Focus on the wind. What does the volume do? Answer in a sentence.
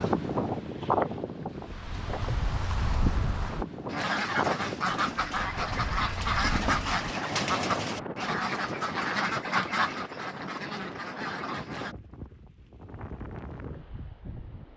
The volume of the wind goes down.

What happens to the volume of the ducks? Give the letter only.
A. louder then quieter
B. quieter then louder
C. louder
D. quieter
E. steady
D.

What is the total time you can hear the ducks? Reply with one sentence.
You can hear the ducks for 8 seconds altogether.